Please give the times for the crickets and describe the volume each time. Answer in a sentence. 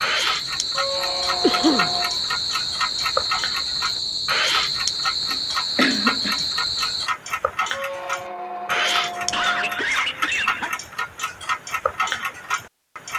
The crickets can be heard from 0.0 to 7.1 s, at a steady volume.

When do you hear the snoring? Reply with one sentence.
The snoring can't be heard in this clip.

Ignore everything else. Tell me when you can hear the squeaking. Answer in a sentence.
You can hear the squeaking from 0.7 to 2.1 s and from 7.7 to 9.8 s.